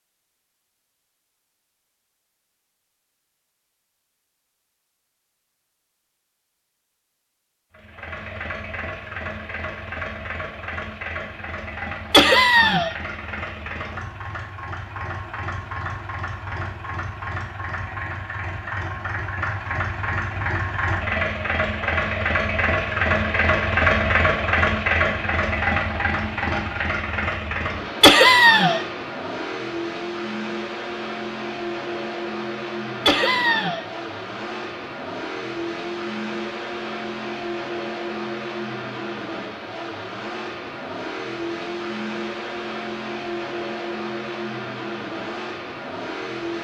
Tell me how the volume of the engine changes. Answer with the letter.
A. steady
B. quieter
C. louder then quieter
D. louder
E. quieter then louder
C.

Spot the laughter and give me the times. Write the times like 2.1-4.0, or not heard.
12.1-12.9, 28.0-28.8, 33.0-33.9.